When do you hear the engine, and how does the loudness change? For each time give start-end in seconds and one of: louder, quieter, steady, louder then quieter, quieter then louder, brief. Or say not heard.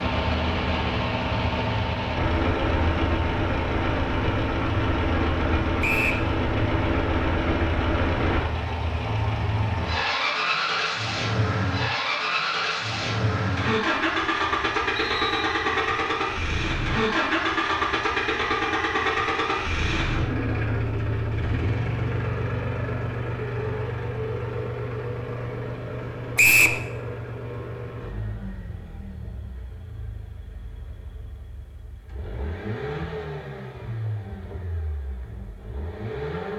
0.0-36.5 quieter.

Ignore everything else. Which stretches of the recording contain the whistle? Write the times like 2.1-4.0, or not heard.
5.8-6.2, 14.9-15.6, 26.4-26.8.